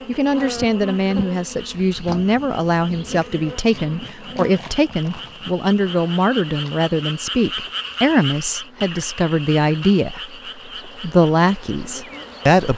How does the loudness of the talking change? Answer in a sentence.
The loudness of the talking stays about the same.